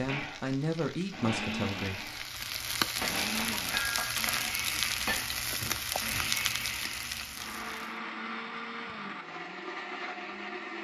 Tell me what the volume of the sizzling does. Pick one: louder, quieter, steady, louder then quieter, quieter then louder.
louder.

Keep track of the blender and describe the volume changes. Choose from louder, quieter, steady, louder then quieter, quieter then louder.
steady.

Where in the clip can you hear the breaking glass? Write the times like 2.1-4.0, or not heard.
3.0-5.2.